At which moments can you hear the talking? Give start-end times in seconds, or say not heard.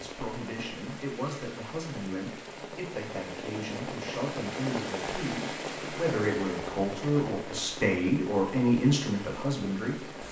0.0-10.2.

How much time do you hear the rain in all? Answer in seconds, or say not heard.
10 s.